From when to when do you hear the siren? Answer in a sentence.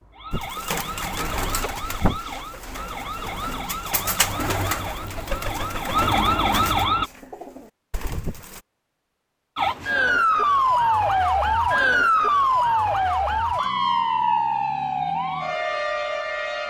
The siren can be heard from 0.0 to 7.1 s and from 9.6 to 16.6 s.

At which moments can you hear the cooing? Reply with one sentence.
You can hear the cooing from 0.3 to 8.6 s.